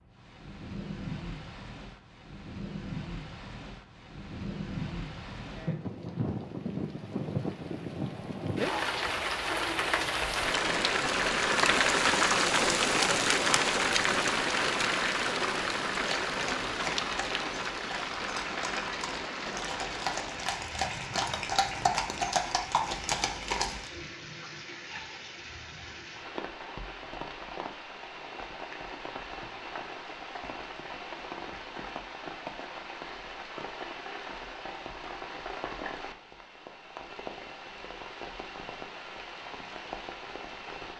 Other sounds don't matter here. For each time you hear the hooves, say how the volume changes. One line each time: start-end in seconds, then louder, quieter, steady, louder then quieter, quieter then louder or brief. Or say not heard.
15.9-23.9 louder.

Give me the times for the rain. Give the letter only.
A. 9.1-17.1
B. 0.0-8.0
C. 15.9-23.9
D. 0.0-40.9
D.